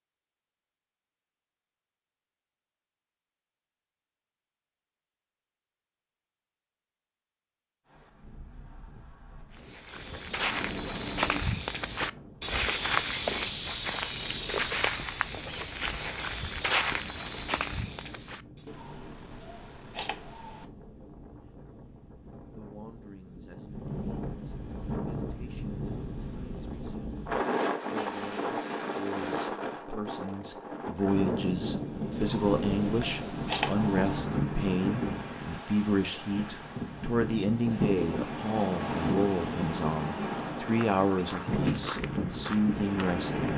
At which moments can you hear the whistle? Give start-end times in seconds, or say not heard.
not heard.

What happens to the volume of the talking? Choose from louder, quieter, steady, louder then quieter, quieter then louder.
louder.